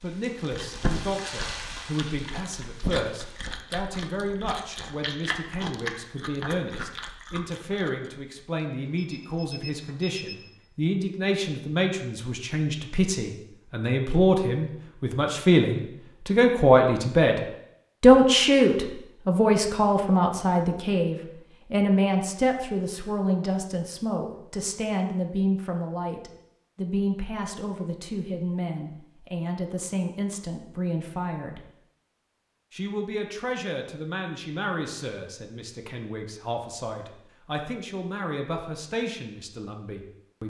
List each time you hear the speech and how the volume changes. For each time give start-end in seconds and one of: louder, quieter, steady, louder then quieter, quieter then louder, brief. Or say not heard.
0.0-17.4 louder
18.0-31.6 quieter
32.7-40.4 steady.